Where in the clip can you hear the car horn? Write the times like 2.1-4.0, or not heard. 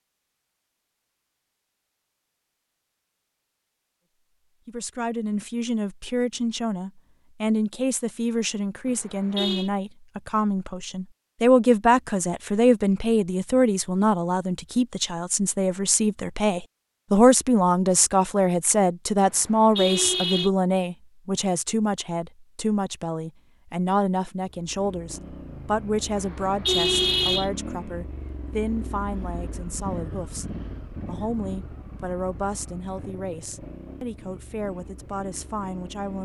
8.8-9.7, 19.2-20.5, 26.1-27.5.